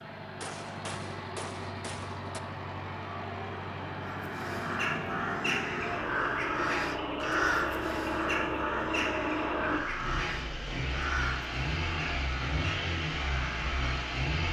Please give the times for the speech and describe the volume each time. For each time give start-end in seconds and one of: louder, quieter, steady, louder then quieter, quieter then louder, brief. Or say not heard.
not heard.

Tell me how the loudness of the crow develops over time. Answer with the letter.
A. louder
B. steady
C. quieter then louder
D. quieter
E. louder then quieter
D.